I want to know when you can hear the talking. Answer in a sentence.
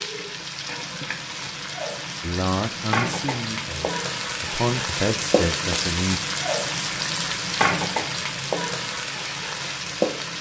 The talking can be heard from 2.2 to 6.2 s.